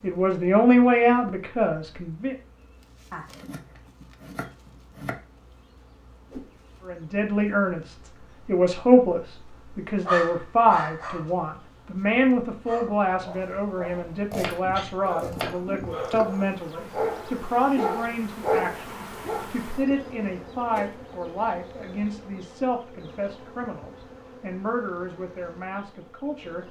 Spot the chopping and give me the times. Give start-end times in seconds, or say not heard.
3.1-5.2, 14.3-16.1.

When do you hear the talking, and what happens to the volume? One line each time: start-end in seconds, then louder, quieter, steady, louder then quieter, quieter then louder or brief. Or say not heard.
0.0-2.4 brief
6.8-26.6 quieter.